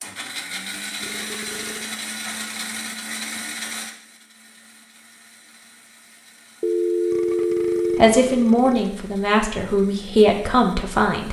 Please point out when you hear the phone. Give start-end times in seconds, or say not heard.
6.6-8.1.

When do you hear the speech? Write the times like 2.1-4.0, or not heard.
8.0-11.2.